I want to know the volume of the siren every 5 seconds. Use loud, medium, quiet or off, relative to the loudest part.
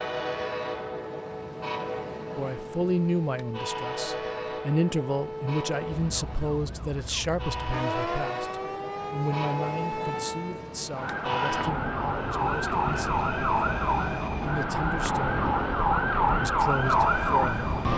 quiet, medium, medium, loud.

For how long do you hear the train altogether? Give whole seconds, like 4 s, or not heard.
18 s.